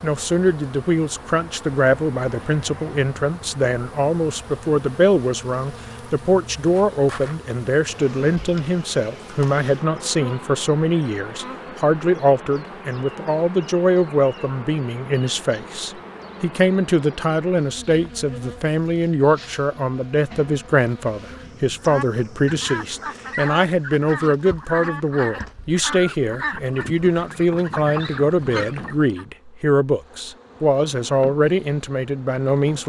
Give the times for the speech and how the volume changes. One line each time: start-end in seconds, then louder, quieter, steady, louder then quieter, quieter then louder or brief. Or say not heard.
0.0-32.8 steady.